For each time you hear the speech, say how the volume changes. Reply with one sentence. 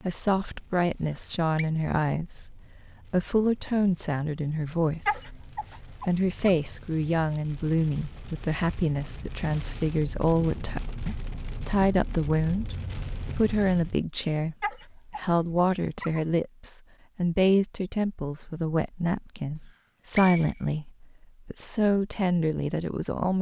The speech can be heard from 0.0 to 12.8 s, at a steady volume; and from 13.3 to 23.3 s, at a steady volume.